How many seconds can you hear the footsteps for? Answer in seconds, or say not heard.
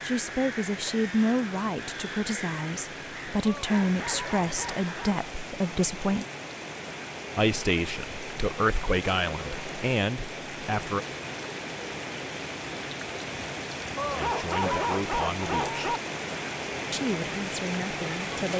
not heard.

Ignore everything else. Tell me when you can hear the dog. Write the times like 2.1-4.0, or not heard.
3.5-5.2, 13.9-16.0.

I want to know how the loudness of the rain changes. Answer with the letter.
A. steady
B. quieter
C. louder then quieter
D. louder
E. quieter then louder
D.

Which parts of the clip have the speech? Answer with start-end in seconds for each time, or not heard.
0.0-6.2, 7.3-11.1, 14.1-15.9, 16.9-18.5.